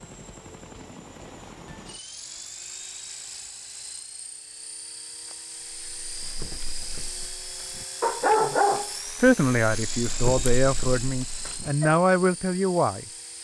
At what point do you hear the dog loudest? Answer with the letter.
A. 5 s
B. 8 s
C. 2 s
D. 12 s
B.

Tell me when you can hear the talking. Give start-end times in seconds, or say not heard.
9.2-13.1.